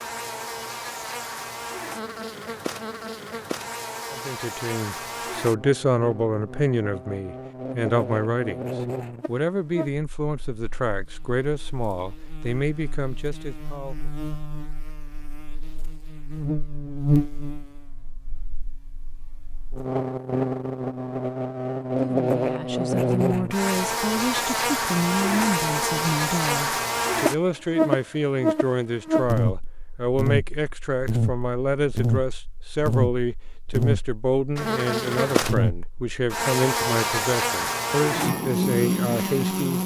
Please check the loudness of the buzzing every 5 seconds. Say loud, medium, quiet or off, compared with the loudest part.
medium, medium, quiet, medium, loud, loud, loud, loud.